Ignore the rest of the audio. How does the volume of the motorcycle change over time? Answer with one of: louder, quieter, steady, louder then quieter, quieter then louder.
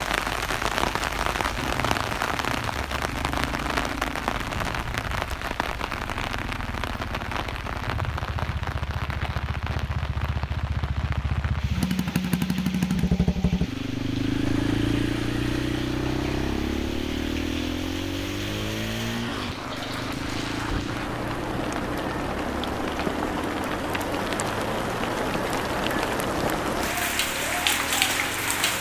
louder then quieter.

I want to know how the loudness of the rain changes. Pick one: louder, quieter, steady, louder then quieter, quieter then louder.
quieter then louder.